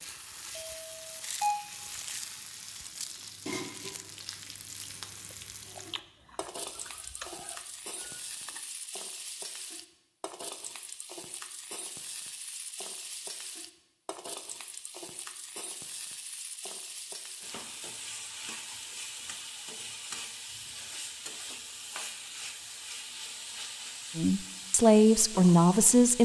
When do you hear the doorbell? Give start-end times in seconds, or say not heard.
0.6-1.6.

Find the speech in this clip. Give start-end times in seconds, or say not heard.
24.1-26.2.